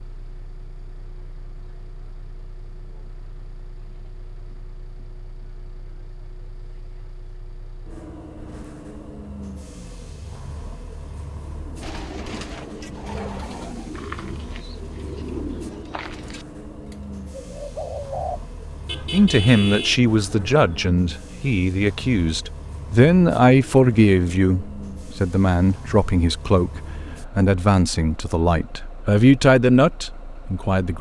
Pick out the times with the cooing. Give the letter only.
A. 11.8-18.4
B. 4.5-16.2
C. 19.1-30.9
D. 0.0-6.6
A.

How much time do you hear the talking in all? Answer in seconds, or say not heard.
12 s.